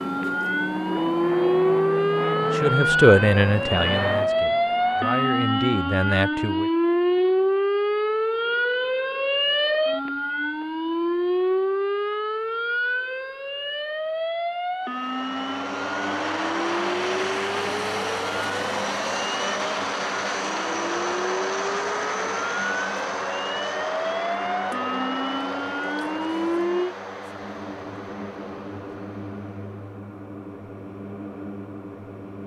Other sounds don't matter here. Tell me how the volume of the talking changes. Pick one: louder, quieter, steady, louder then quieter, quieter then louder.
quieter then louder.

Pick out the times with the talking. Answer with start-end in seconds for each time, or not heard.
2.5-6.7.